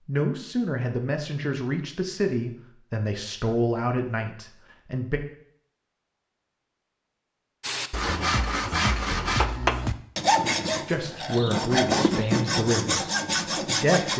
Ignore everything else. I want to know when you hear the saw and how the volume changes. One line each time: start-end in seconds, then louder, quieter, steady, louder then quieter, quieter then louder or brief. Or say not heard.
7.6-14.1 steady.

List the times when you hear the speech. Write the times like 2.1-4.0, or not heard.
0.1-5.2, 10.8-13.1, 13.7-14.1.